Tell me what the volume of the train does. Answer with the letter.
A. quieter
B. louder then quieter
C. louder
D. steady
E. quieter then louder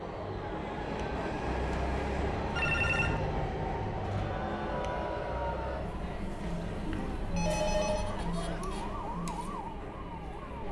A.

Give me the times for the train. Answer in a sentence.
You can hear the train from 0.0 to 10.6 s.